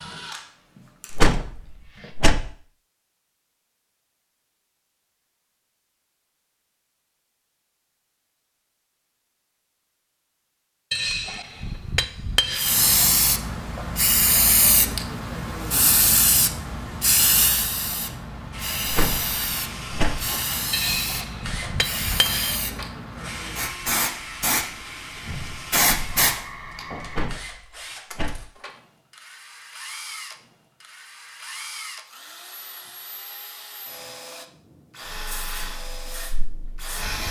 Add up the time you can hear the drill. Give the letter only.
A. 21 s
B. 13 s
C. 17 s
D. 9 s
A.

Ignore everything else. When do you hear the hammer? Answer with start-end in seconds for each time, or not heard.
10.9-12.8, 20.7-22.6.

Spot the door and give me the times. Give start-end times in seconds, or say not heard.
1.1-2.4, 18.9-20.1, 27.1-28.4.